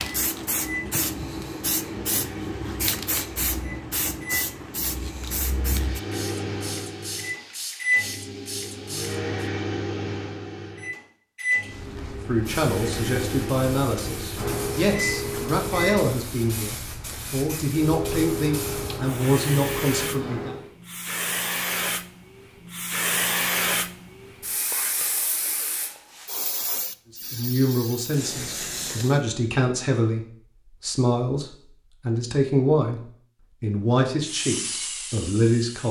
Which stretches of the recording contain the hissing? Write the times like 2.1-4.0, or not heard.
0.0-9.3, 11.7-29.2, 34.2-35.8.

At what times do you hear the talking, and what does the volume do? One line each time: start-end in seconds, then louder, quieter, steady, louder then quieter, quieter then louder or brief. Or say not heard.
12.2-20.6 steady
27.1-35.8 steady.